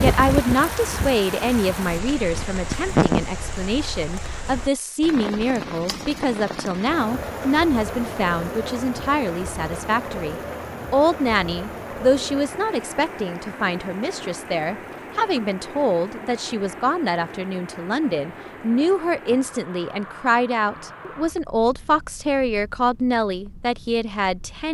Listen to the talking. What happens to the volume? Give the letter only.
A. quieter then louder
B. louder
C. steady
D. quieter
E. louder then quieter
C.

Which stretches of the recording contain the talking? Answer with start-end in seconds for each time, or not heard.
0.0-24.6.